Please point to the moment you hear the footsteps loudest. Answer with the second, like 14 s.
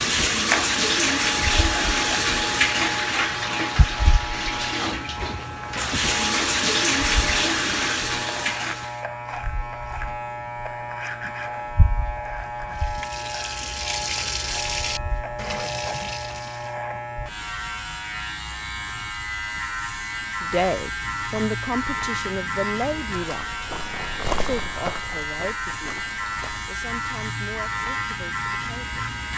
24 s.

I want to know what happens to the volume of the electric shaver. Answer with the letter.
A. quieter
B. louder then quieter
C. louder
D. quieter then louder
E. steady
E.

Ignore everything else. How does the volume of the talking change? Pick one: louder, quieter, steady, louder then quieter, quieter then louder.
quieter.